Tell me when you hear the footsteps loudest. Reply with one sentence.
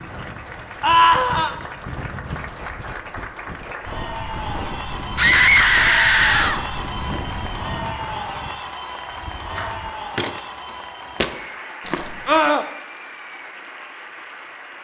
The volume of the footsteps peaks at 11 seconds.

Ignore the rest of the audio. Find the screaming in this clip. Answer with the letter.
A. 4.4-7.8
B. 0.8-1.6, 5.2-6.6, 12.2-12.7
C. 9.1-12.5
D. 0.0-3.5
B.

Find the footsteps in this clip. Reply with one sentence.
You can hear the footsteps from 9.1 to 12.5 s.